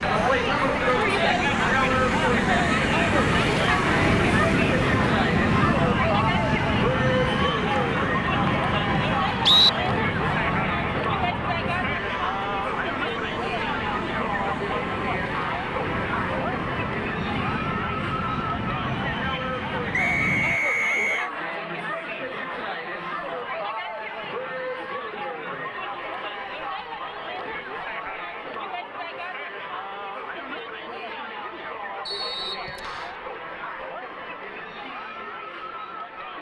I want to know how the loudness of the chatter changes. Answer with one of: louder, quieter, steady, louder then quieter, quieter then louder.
quieter.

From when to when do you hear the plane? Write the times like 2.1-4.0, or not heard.
0.0-20.6.